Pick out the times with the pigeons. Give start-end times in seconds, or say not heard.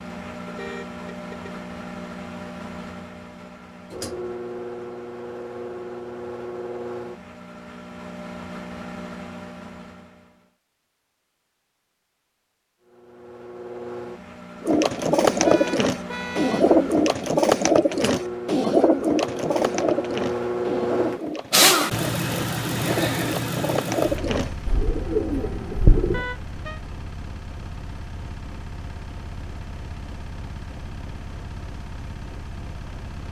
14.6-26.2.